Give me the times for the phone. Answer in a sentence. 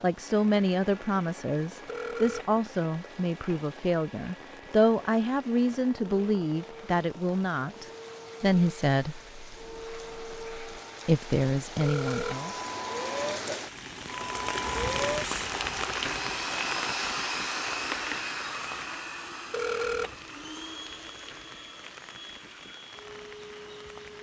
You can hear the phone from 1.9 to 2.5 s, from 11.8 to 12.4 s and from 19.5 to 20.1 s.